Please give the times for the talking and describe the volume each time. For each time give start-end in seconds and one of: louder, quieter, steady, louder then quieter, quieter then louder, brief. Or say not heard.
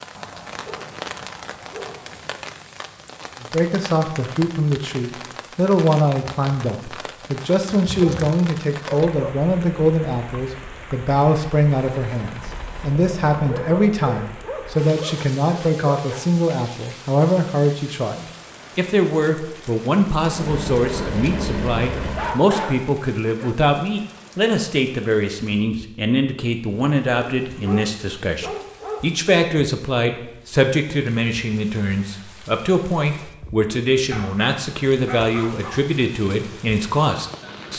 3.4-37.7 steady.